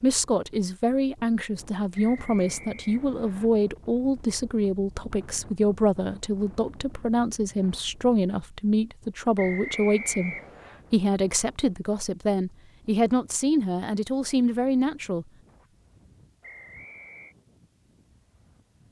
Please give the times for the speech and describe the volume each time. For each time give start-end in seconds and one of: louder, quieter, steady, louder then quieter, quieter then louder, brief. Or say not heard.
0.0-15.2 steady.